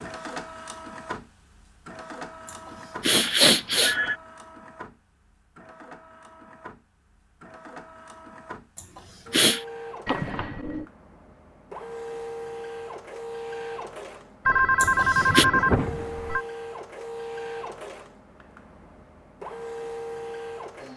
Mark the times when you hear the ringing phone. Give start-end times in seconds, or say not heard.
3.1-4.2, 10.1-10.8, 14.4-16.4.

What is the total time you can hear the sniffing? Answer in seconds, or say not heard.
3 s.